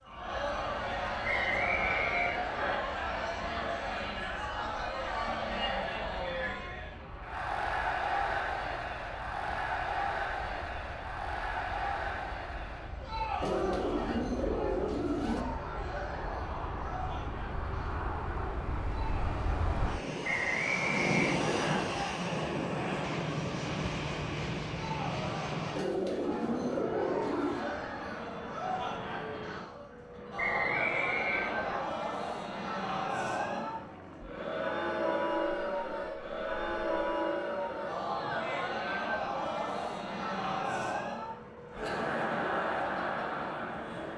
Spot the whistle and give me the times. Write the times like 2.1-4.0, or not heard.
1.2-2.8, 20.2-21.8, 30.4-31.8.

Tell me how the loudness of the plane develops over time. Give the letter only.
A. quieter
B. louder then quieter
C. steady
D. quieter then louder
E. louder
B.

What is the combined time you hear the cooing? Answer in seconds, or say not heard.
4 s.